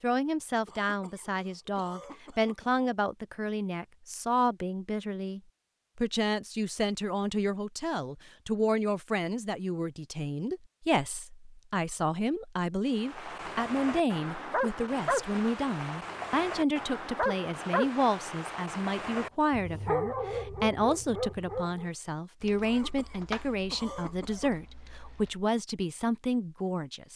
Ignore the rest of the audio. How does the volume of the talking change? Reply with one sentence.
The volume of the talking stays about the same.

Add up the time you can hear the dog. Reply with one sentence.
You can hear the dog for 9 seconds altogether.